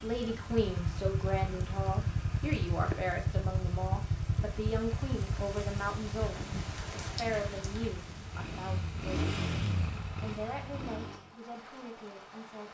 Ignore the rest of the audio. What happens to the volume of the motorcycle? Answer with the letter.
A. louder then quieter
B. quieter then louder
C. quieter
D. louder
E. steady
B.